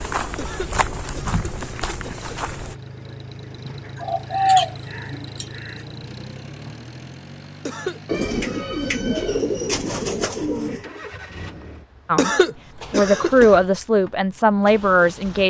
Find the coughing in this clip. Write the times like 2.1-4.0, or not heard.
0.3-2.3, 7.7-8.7, 12.2-13.5.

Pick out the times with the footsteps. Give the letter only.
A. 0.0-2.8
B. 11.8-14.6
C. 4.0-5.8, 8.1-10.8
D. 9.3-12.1
A.